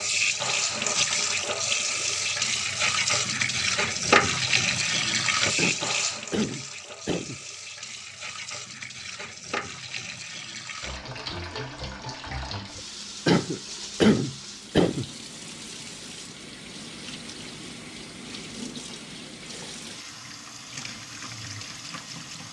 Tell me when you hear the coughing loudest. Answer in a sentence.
The loudest moment of the coughing is at 14 seconds.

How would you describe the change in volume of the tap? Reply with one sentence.
The volume of the tap goes down.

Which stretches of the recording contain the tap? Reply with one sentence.
You can hear the tap from 0.0 to 22.4 s.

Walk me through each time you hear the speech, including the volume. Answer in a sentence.
The speech can't be heard in this clip.